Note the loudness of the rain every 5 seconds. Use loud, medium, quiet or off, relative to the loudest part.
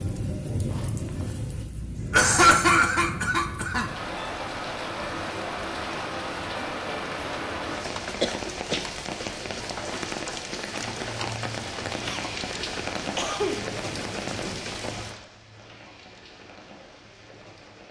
loud, loud, loud, quiet.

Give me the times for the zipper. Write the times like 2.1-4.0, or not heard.
0.7-1.4, 13.8-14.7.